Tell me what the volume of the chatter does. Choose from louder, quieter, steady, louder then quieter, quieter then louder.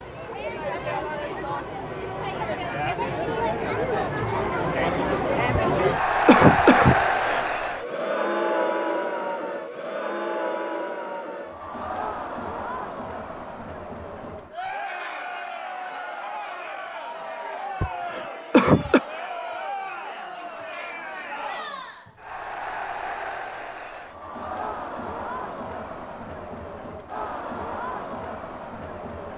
quieter.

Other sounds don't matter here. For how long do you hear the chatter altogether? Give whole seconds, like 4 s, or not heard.
29 s.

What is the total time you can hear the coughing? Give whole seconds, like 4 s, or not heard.
3 s.